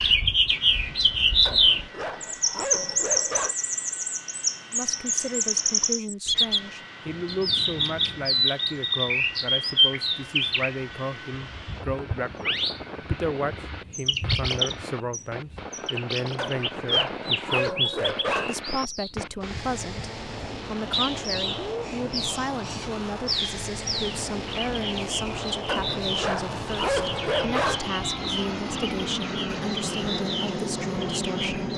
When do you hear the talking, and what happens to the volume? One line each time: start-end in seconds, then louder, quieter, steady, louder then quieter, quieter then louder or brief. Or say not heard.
4.7-31.7 steady.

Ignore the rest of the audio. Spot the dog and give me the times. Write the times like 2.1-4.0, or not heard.
1.4-3.5, 16.4-18.6, 25.6-27.9.